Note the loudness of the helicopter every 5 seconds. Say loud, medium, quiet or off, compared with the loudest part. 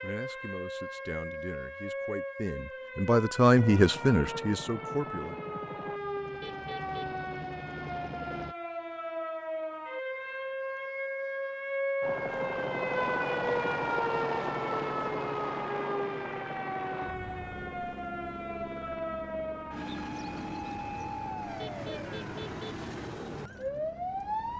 medium, medium, loud, medium, quiet.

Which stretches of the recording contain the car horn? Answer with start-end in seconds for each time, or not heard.
6.4-7.2, 21.6-22.9.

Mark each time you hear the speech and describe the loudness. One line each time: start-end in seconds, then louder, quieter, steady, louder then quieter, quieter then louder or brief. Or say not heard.
0.0-5.5 louder then quieter.